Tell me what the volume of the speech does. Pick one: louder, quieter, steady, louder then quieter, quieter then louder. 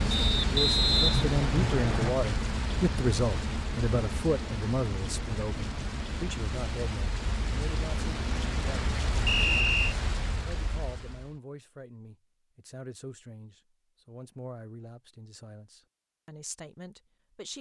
quieter.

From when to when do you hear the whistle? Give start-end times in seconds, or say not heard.
0.1-2.1, 9.2-9.9.